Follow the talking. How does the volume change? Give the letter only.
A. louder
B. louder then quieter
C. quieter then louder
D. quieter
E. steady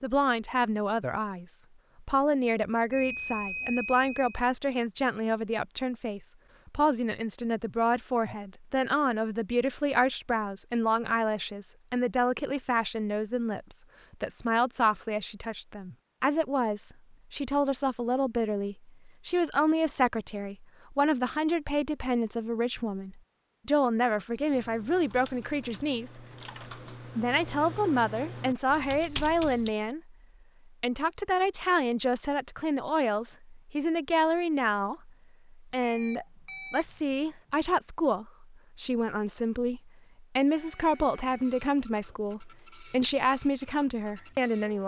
E.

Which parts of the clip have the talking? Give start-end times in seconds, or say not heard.
0.0-26.2, 27.1-30.1, 30.8-44.8.